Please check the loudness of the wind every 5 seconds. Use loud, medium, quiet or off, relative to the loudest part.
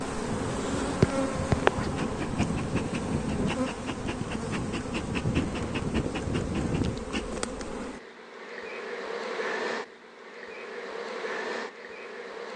medium, loud, off.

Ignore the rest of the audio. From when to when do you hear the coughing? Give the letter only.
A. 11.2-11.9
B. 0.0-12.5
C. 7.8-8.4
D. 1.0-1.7
D.